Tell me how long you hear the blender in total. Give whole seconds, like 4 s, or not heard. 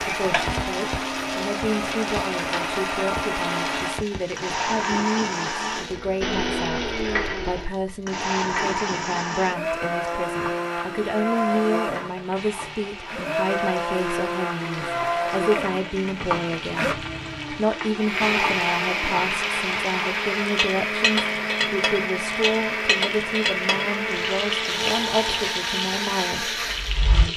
27 s.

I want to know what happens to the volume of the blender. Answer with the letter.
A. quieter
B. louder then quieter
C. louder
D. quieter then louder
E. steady
E.